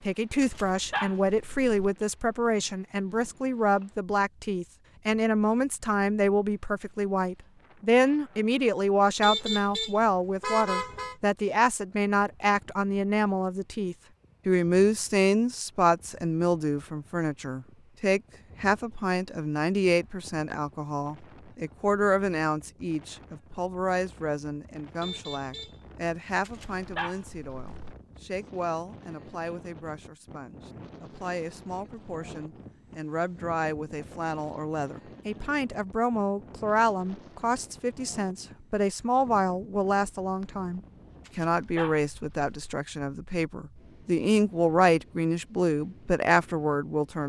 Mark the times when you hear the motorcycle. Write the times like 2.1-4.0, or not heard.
not heard.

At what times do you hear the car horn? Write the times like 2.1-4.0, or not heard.
9.2-11.2, 25.0-25.9.